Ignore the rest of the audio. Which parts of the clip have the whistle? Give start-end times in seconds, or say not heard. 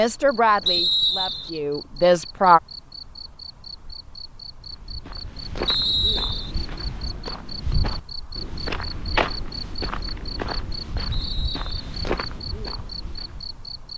0.7-1.5, 5.7-6.5, 11.1-11.8.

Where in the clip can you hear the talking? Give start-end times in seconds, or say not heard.
0.0-2.6.